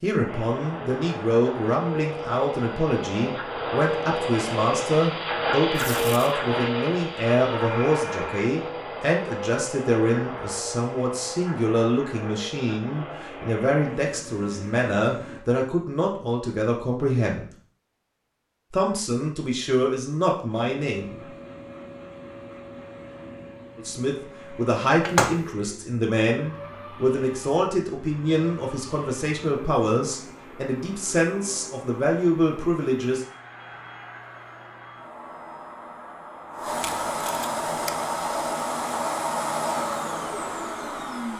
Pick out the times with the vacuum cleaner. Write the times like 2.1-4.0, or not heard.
0.1-15.4, 20.4-41.3.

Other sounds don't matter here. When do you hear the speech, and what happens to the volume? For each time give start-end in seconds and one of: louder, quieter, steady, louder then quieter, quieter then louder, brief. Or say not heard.
0.0-17.4 steady
18.7-21.2 brief
23.8-33.2 steady.